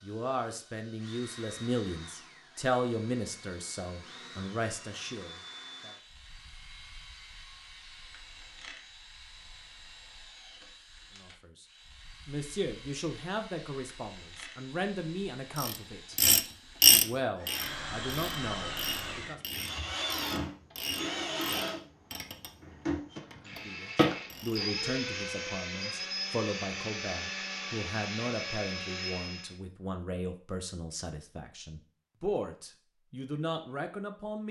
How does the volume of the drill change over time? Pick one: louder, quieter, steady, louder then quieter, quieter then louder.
louder.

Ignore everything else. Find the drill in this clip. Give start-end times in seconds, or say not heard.
0.0-29.6.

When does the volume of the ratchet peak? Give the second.
17 s.